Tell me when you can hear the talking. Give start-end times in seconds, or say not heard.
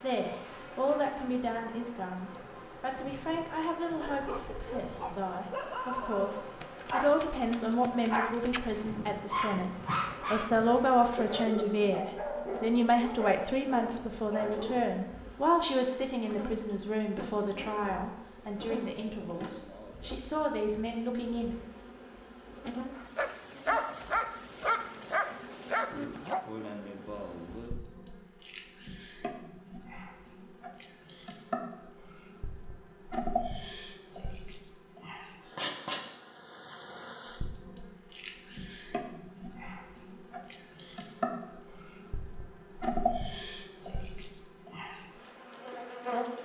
0.0-21.6.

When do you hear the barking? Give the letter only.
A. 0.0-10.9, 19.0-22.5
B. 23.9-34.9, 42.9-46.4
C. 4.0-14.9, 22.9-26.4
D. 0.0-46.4
C.